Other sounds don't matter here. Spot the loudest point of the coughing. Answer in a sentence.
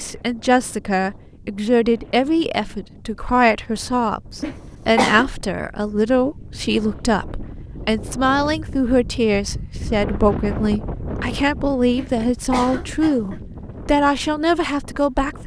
The loudest moment of the coughing is at 5 seconds.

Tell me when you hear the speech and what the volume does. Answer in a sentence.
You can hear the speech from 0.0 to 15.4 s, at a steady volume.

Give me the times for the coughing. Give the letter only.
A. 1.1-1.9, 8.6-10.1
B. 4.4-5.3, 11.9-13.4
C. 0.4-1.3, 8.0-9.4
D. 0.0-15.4
B.